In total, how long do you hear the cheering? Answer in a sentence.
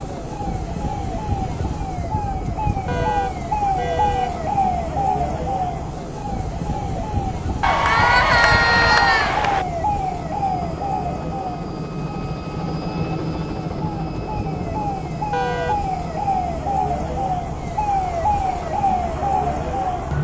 You can hear the cheering for 2 seconds altogether.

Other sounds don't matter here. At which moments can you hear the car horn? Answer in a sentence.
You can hear the car horn from 2.9 to 4.4 s and from 15.3 to 15.9 s.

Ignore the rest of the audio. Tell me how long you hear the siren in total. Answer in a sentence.
You can hear the siren for 20 seconds altogether.